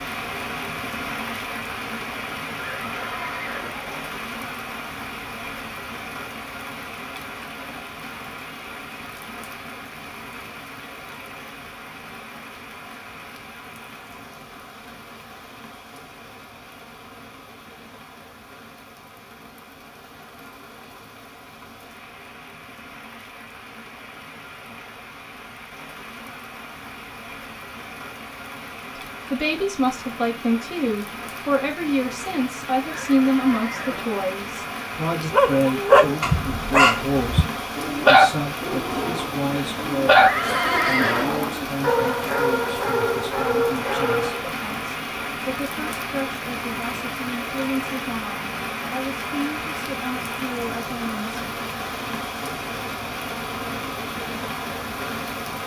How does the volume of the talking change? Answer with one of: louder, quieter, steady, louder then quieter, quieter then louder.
quieter.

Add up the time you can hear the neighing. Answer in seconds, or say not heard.
4 s.